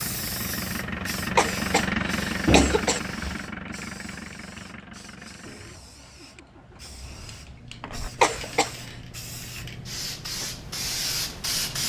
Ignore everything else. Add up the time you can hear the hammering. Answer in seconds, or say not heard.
not heard.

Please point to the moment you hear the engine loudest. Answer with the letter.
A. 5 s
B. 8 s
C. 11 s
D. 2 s
D.